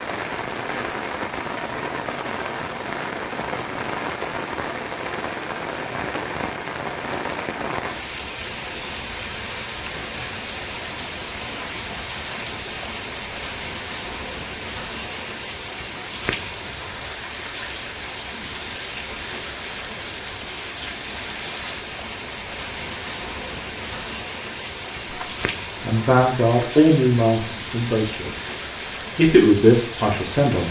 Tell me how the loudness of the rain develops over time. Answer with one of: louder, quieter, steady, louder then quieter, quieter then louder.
steady.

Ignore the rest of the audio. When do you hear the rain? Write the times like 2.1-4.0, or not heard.
0.0-30.6.